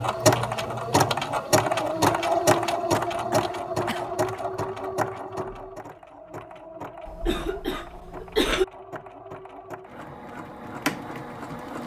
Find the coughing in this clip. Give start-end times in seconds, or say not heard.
3.0-4.0, 7.0-8.7.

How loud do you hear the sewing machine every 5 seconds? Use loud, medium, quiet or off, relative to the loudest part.
loud, quiet, medium.